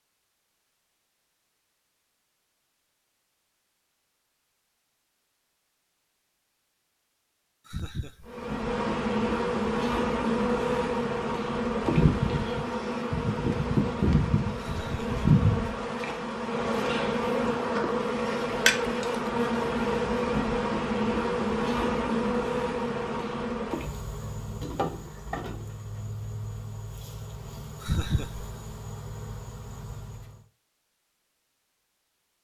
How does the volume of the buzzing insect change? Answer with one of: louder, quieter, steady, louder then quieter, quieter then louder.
quieter.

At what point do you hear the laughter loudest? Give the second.
28 s.